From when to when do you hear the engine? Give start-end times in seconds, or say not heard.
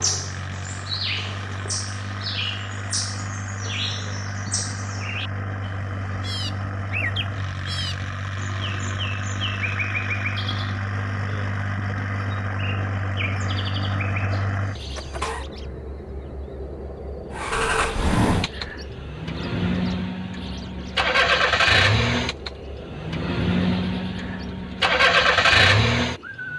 0.0-15.4, 17.3-26.5.